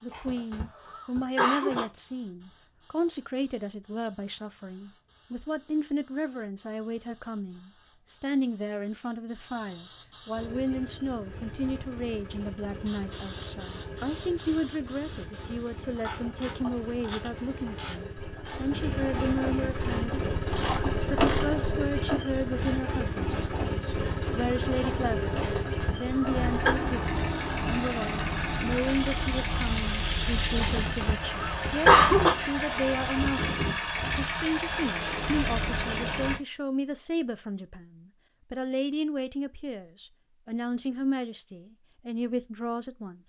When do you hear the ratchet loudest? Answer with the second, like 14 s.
21 s.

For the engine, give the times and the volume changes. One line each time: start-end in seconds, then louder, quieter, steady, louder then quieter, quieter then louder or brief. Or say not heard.
10.3-36.4 louder.